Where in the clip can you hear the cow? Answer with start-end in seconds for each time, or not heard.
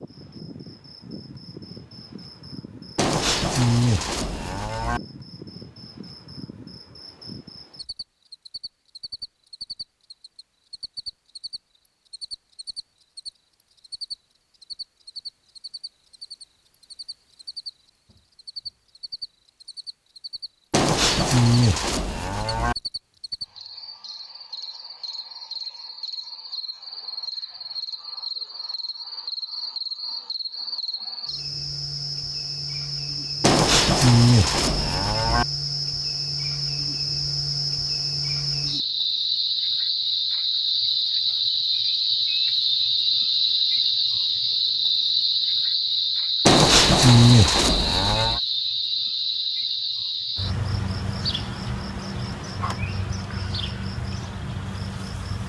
3.0-5.0, 20.7-22.8, 33.4-35.5, 46.5-48.4.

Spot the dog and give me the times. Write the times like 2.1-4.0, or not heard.
not heard.